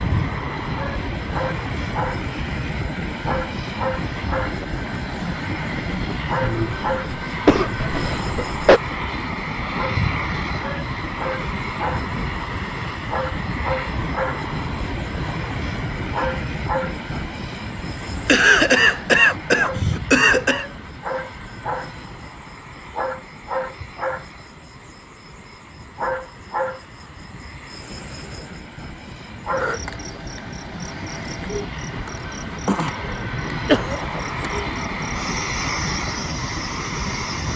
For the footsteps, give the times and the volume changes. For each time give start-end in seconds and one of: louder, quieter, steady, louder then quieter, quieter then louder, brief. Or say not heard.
not heard.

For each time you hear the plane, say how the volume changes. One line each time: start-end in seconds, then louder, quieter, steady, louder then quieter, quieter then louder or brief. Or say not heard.
0.0-37.5 quieter then louder.